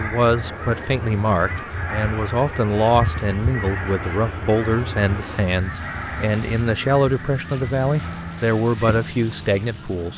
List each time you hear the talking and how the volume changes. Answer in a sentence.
The talking can be heard from 0.0 to 10.1 s, at a steady volume.